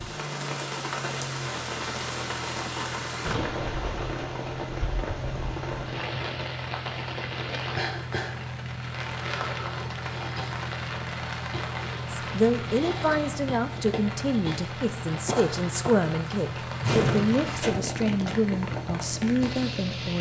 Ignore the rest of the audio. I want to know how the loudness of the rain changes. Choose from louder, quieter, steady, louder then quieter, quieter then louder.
steady.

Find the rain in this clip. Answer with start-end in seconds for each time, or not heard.
0.0-20.1.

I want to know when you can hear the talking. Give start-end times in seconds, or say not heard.
12.2-20.1.